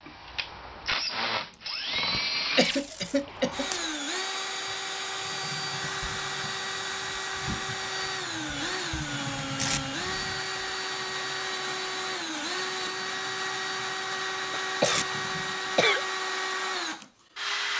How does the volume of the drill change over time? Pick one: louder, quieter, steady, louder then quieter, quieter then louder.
steady.